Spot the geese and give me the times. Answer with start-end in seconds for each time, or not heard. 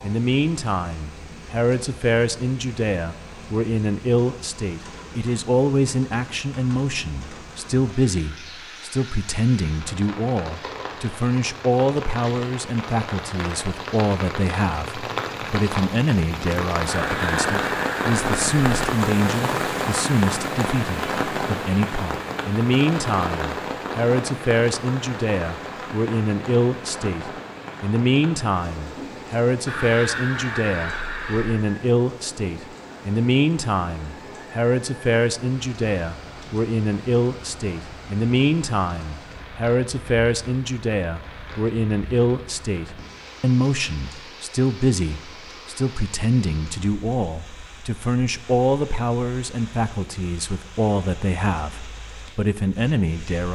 16.9-18.8, 29.6-31.6.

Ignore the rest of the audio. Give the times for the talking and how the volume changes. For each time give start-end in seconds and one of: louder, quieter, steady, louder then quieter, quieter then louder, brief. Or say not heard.
0.0-53.4 steady.